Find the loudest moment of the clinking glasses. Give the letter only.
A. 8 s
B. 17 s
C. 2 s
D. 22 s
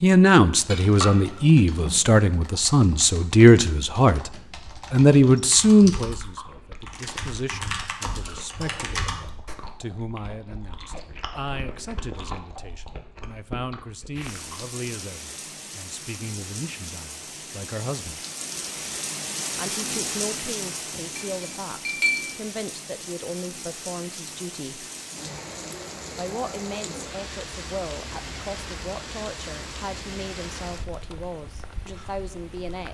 D.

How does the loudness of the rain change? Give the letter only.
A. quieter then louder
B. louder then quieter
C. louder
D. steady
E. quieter
B.